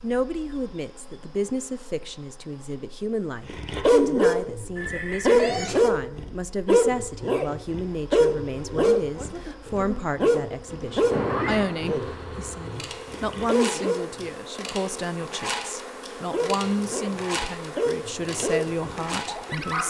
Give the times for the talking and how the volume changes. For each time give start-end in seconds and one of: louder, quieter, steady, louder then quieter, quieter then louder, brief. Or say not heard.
0.0-19.8 steady.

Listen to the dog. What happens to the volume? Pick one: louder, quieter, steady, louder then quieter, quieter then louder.
quieter.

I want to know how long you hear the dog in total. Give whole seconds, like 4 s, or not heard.
14 s.